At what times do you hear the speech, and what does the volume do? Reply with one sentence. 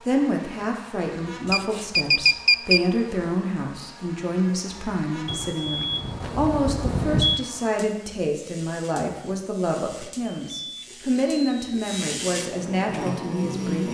You can hear the speech from 0.0 to 13.8 s, at a steady volume.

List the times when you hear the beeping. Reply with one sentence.
The beeping can be heard from 1.5 to 2.8 s, from 5.2 to 7.5 s and from 10.0 to 12.1 s.